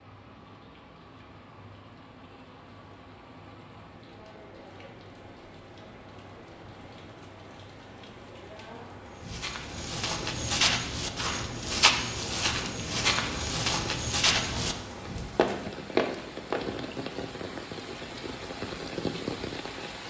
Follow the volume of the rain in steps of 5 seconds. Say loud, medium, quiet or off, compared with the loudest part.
quiet, medium, medium, loud.